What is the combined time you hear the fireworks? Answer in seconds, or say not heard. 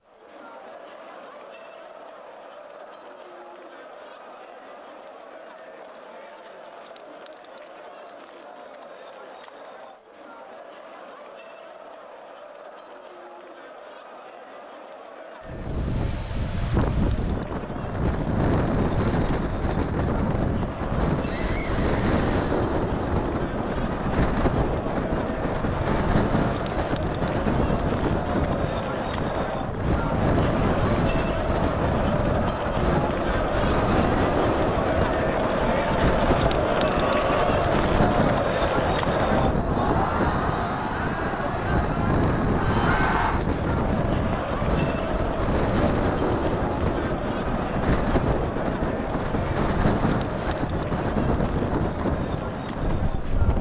not heard.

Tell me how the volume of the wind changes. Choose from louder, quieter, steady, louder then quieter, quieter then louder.
steady.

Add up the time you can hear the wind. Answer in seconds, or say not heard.
38 s.